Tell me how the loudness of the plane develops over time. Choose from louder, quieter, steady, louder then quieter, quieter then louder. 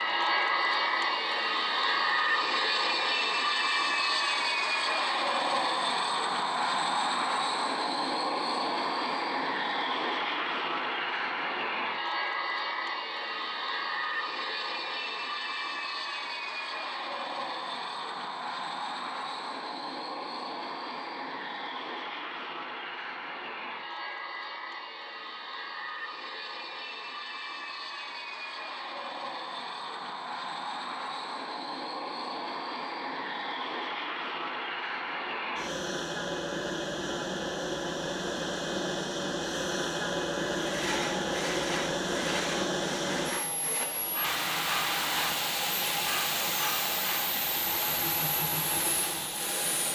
quieter then louder.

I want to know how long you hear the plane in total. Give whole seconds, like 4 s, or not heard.
50 s.